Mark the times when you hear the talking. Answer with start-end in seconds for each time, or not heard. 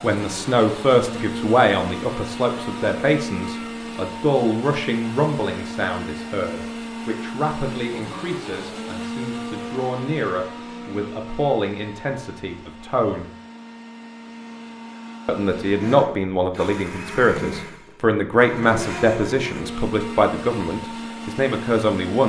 0.0-13.2, 15.2-22.2.